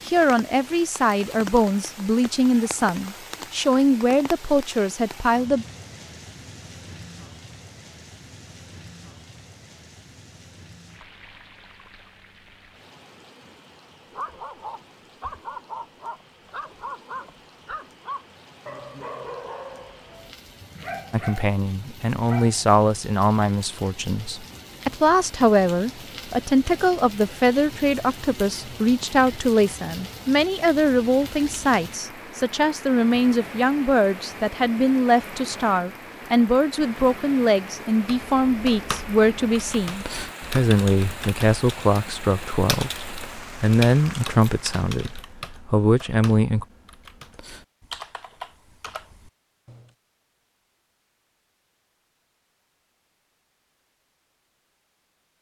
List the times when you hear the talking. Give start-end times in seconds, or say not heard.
0.1-5.7, 21.1-46.6.